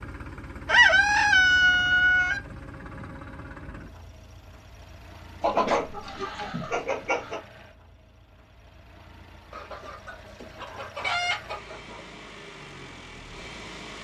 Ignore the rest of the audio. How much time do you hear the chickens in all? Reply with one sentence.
You can hear the chickens for 6 seconds altogether.